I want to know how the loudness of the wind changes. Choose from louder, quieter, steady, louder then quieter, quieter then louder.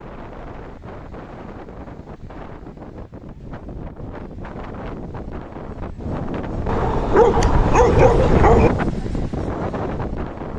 louder.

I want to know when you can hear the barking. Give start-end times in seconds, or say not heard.
6.7-8.7.